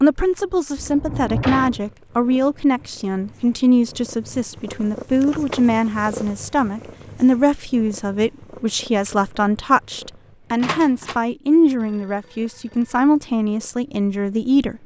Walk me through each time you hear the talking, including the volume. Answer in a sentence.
You can hear the talking from 0.0 to 14.8 s, at a steady volume.